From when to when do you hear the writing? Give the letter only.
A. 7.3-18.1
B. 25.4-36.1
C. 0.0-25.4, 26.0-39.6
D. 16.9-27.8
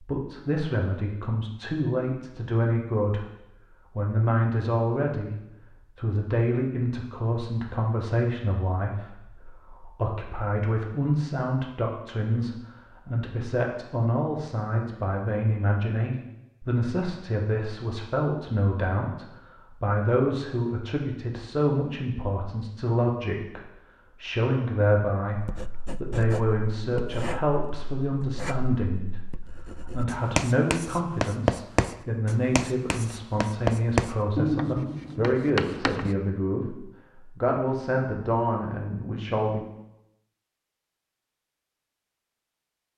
B.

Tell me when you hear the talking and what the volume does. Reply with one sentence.
The talking can be heard from 0.0 to 25.4 s, at a steady volume; and from 26.0 to 39.6 s, at a steady volume.